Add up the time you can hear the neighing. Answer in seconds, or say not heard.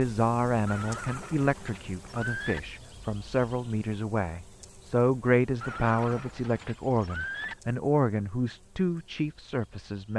4 s.